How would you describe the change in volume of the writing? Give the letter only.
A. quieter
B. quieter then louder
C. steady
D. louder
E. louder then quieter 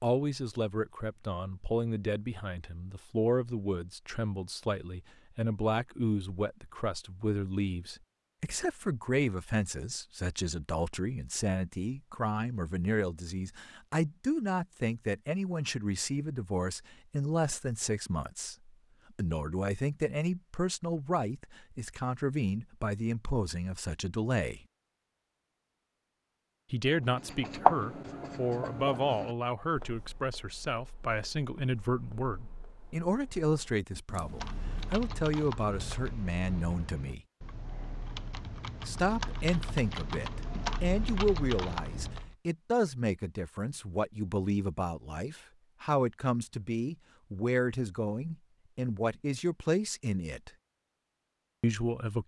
A.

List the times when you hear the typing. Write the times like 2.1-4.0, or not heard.
34.1-42.4.